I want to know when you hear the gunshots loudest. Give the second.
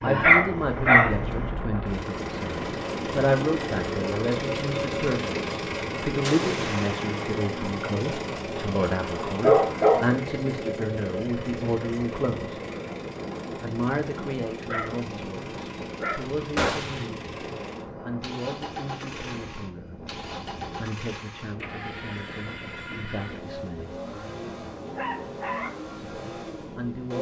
17 s.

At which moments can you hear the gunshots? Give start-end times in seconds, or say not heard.
6.2-7.2, 16.6-17.1.